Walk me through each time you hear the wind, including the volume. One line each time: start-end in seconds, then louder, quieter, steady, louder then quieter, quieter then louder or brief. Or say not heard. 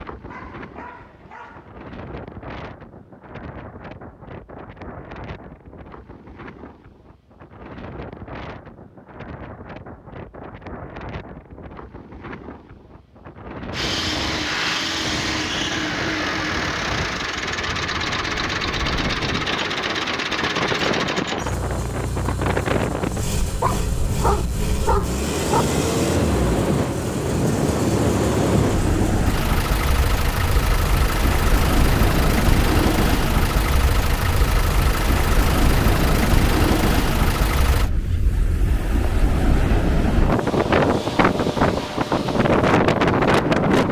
0.0-43.8 louder.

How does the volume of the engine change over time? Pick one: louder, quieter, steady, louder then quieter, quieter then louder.
steady.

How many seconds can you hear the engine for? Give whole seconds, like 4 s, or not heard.
24 s.